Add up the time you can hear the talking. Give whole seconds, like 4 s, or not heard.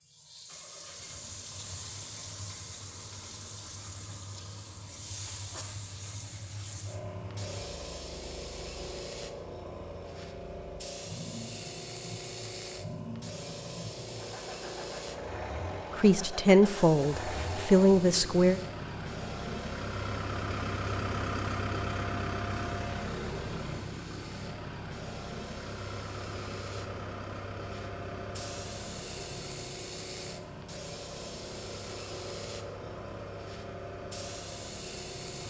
3 s.